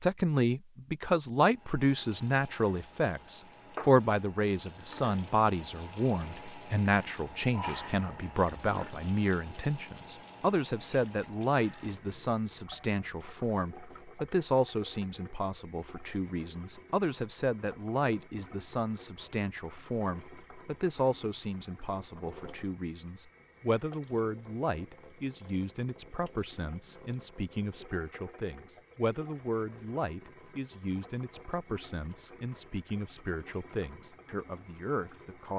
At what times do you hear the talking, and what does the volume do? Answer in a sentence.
The talking can be heard from 0.0 to 35.5 s, getting quieter.